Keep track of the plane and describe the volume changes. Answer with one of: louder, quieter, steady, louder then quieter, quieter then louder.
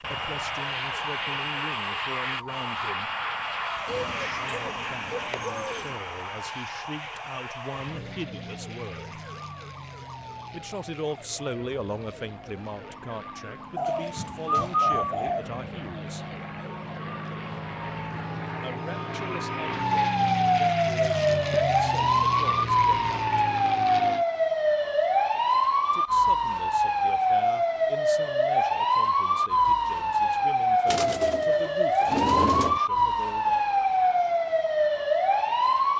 quieter then louder.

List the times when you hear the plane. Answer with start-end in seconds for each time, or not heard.
0.0-24.2.